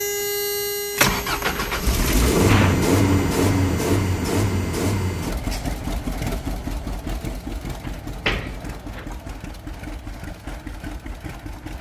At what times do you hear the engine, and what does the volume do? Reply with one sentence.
You can hear the engine from 0.0 to 11.7 s, getting quieter.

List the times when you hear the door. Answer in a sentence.
The door can be heard from 1.3 to 2.9 s and from 7.8 to 9.1 s.